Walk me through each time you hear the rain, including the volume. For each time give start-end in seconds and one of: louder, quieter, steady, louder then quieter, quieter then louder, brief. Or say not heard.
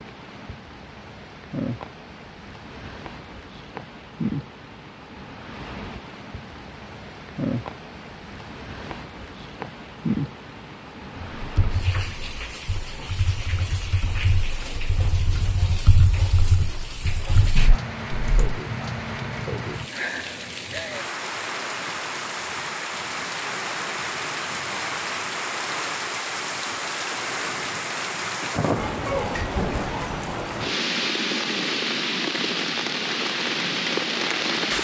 0.0-34.7 louder.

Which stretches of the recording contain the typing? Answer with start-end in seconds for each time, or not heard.
11.3-18.6.